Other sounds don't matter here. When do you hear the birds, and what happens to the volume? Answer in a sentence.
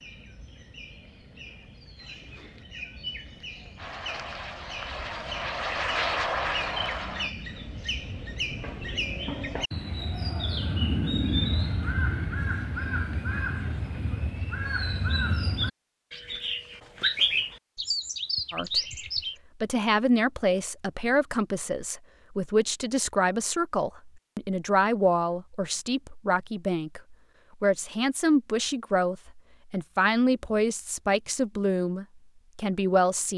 You can hear the birds from 0.0 to 19.4 s, getting louder.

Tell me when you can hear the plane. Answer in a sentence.
The plane can be heard from 3.8 to 7.3 s.